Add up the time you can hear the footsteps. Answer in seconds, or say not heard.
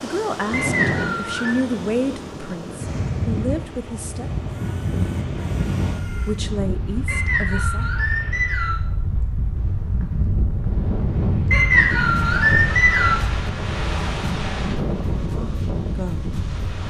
not heard.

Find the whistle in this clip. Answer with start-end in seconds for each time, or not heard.
0.5-1.6, 7.0-8.8, 11.5-13.2.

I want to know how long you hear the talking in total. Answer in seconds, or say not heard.
7 s.